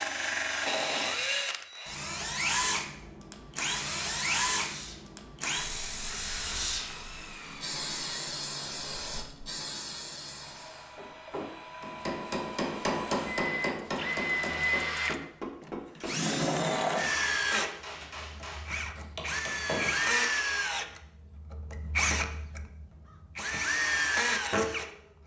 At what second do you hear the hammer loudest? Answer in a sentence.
The loudest moment of the hammer is at 13 seconds.